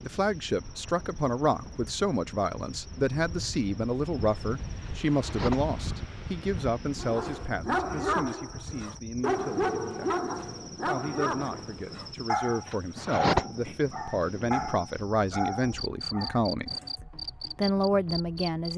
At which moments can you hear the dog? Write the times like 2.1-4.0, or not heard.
7.0-16.9.